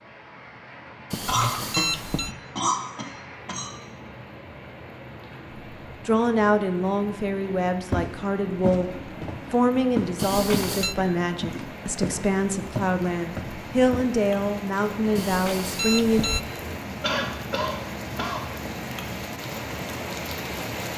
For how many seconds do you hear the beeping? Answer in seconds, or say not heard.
3 s.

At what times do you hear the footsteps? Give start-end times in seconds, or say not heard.
7.9-10.8, 11.4-14.1.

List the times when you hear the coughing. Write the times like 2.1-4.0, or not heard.
1.2-3.7, 10.2-11.7, 17.0-18.4.